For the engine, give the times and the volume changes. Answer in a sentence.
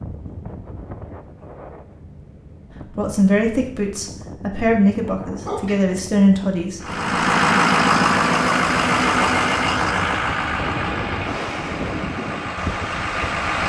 The engine can be heard from 6.8 to 13.6 s, getting quieter.